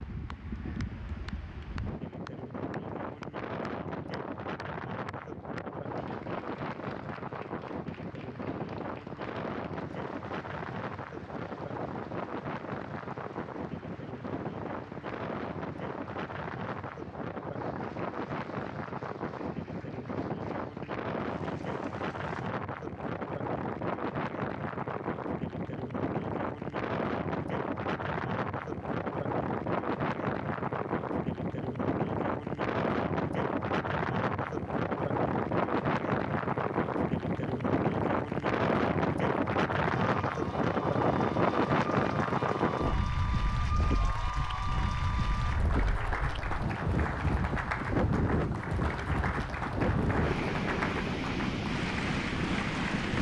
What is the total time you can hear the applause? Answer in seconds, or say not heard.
53 s.